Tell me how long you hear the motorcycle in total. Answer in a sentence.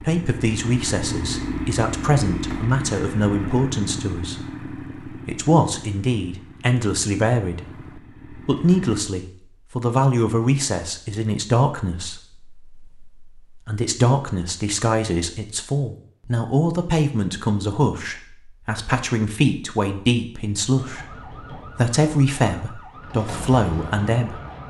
You can hear the motorcycle for 9 seconds altogether.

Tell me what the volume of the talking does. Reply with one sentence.
The loudness of the talking stays about the same.